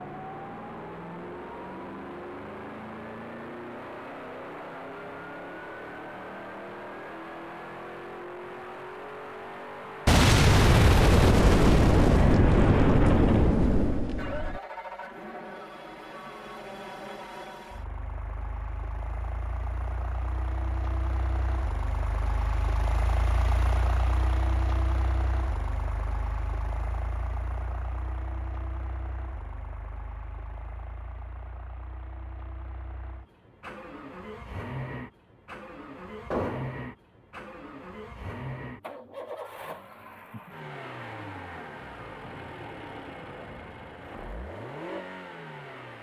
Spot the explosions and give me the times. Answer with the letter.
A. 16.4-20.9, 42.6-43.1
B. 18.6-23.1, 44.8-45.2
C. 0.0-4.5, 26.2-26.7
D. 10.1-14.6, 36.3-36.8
D.